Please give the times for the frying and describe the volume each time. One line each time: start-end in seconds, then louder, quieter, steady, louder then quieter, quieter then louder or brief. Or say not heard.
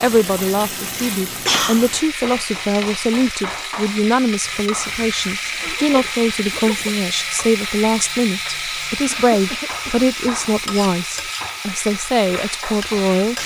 0.0-13.4 steady.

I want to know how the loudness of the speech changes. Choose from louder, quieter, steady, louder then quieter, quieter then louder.
steady.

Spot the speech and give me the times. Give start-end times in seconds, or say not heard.
0.0-13.3.